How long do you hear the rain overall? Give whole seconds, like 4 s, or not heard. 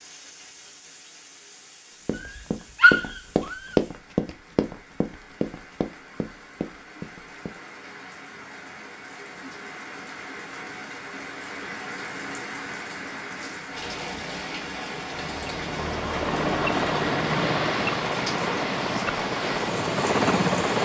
21 s.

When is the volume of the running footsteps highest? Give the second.
4 s.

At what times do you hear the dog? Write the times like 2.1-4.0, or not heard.
2.2-3.8.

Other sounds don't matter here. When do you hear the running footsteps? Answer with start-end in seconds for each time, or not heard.
2.0-7.5.